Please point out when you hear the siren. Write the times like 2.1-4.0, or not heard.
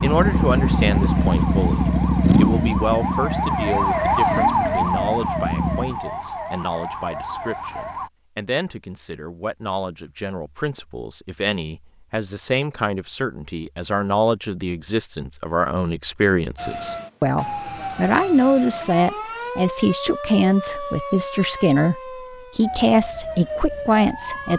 0.0-8.1, 16.6-24.5.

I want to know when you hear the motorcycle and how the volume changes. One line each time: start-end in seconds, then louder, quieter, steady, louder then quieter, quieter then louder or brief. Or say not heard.
0.0-6.0 quieter.